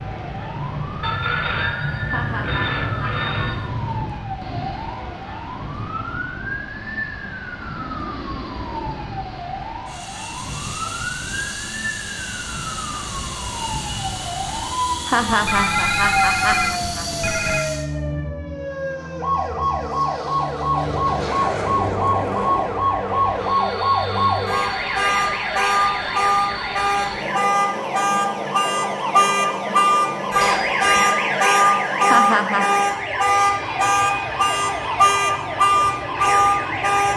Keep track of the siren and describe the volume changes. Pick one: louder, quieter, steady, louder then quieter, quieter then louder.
louder.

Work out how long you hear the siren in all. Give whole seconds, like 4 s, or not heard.
37 s.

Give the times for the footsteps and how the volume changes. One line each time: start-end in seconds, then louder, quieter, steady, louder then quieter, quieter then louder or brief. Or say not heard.
not heard.